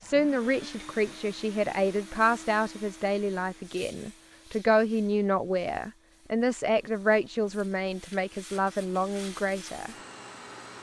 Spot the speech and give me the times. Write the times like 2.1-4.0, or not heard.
0.0-9.9.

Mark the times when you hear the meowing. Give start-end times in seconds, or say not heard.
not heard.